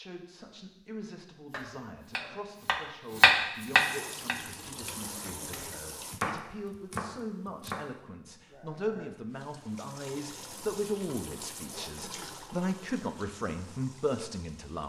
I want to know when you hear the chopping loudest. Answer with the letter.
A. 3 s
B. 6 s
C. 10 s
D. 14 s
A.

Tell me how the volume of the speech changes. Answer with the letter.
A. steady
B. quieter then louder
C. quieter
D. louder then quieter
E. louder
E.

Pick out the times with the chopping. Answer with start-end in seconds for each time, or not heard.
1.5-7.8.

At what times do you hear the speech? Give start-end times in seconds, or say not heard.
0.0-14.8.